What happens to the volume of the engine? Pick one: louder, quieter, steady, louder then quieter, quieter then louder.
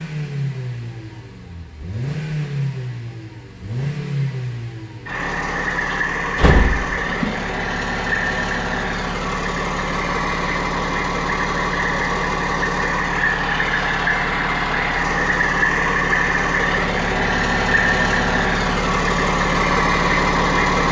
louder.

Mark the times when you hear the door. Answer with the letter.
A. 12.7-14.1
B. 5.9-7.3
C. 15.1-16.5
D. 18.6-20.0
B.